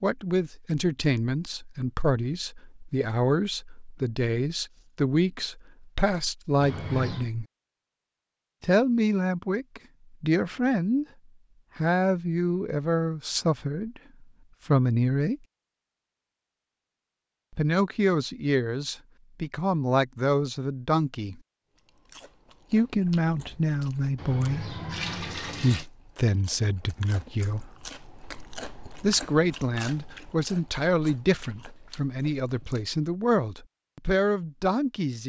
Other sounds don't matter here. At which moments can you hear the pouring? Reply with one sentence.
The pouring can be heard from 6.6 to 7.3 s and from 24.1 to 25.9 s.